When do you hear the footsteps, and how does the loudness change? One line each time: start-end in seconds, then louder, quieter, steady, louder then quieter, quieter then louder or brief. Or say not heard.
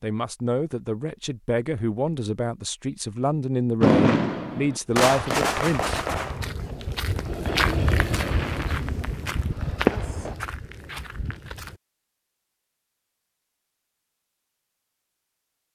5.0-11.8 louder then quieter.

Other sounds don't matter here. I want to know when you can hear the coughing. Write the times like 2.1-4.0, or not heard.
not heard.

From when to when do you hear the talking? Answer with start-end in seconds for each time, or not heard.
0.0-6.0.